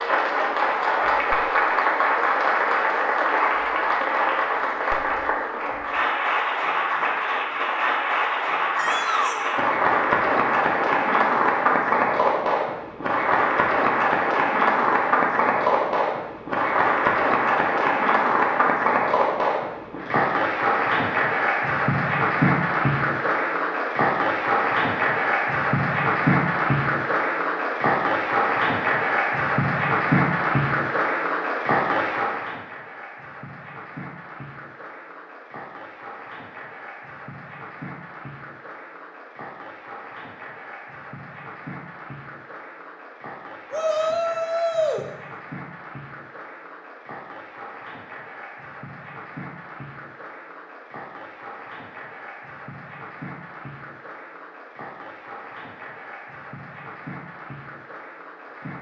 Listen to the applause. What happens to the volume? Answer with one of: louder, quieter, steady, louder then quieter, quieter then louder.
quieter.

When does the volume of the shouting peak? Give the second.
45 s.